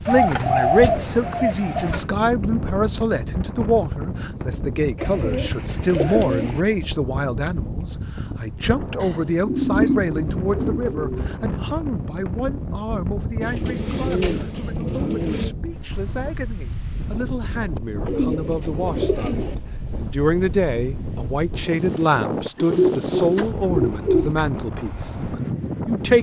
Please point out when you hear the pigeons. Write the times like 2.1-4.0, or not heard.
0.1-2.0, 5.0-6.6, 9.0-11.3, 13.4-15.5, 18.1-19.6, 22.6-24.4.